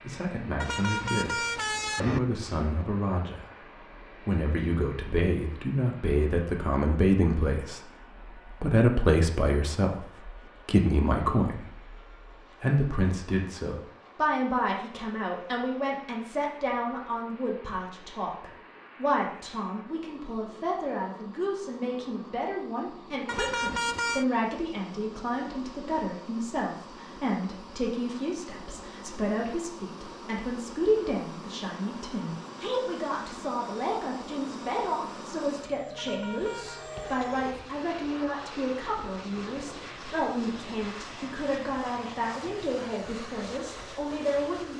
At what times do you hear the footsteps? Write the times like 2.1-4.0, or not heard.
not heard.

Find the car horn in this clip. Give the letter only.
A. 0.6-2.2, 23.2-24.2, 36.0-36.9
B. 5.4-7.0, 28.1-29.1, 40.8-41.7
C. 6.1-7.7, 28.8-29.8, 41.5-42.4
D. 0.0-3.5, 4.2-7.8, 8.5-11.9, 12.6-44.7
A.